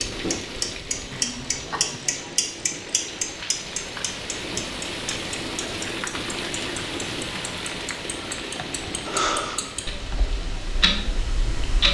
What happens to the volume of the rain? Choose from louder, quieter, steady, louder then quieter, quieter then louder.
louder then quieter.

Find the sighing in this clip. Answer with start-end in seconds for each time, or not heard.
1.1-2.1, 8.6-10.2.